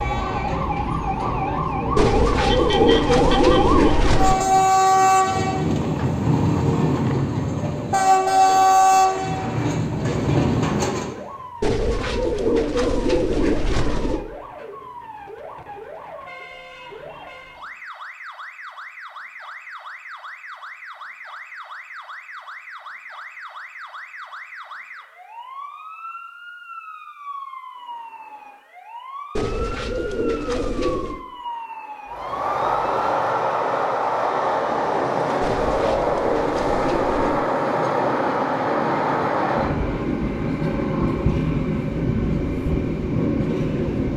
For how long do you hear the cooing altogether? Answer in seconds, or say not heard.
9 s.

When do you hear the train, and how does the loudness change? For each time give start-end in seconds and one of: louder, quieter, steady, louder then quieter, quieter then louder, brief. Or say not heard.
0.0-11.2 louder
32.1-44.1 steady.